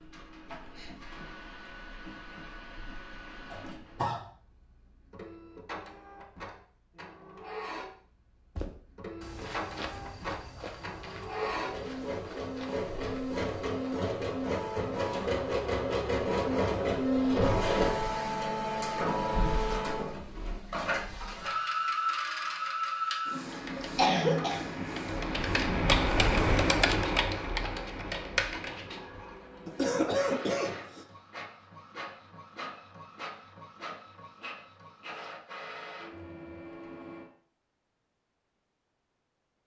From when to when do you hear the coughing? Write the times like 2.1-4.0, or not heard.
3.5-4.2, 23.8-24.6, 29.6-31.1.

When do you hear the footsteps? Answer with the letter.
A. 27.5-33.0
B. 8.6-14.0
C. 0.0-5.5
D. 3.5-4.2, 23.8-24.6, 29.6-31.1
B.